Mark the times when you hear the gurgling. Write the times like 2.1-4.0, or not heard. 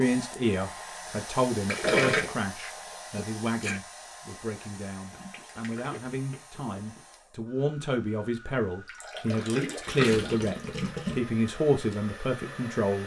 1.6-2.4, 5.1-7.0, 8.8-11.2.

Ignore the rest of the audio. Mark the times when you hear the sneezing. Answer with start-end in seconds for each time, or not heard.
3.1-3.8.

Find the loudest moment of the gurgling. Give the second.
2 s.